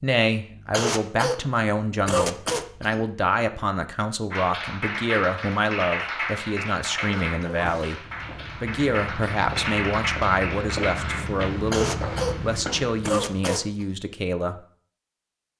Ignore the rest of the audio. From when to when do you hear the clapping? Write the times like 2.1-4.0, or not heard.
4.3-11.3.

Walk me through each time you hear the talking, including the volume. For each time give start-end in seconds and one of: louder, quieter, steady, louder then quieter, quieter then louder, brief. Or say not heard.
0.0-14.6 steady.